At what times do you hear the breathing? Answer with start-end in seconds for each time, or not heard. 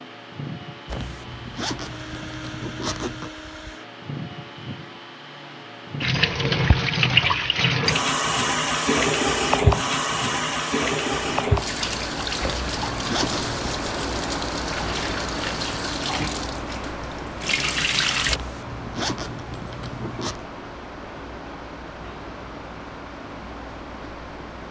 not heard.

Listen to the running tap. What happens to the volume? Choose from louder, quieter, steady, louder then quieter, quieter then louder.
quieter.